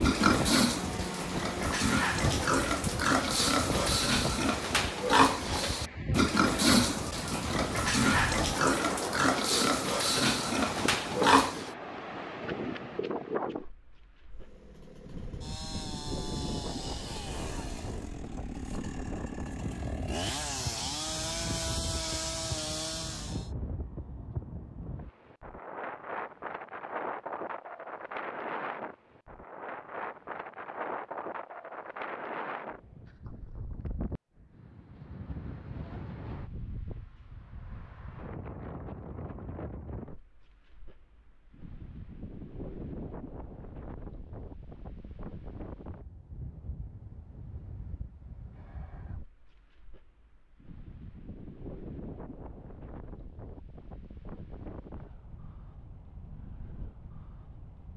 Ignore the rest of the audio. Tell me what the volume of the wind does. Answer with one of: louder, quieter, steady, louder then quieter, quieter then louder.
quieter.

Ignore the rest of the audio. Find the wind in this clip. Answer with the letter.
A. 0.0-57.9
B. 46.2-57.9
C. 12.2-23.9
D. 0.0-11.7
A.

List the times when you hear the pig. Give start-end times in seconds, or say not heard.
0.0-11.7.